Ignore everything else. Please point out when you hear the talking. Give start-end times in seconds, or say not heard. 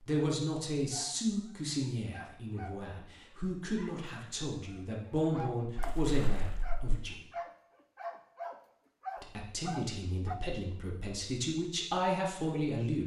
0.0-7.2, 9.2-13.0.